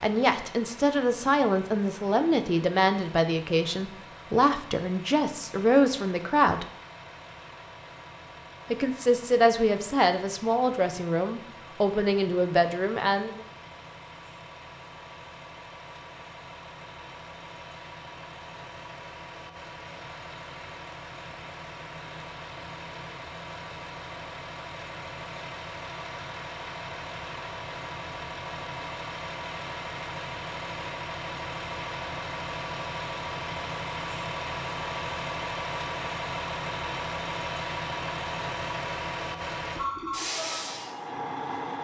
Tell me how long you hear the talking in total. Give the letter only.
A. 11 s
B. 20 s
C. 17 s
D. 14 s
A.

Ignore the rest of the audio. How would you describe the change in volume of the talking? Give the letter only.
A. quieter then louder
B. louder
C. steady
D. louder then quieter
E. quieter
C.